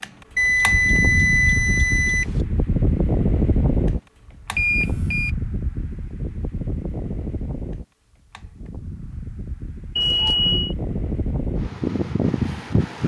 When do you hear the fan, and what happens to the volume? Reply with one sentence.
You can hear the fan from 0.0 to 13.0 s, getting quieter then louder.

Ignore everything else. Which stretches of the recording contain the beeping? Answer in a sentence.
The beeping can be heard from 0.3 to 2.2 s, from 4.5 to 5.3 s and from 9.9 to 10.8 s.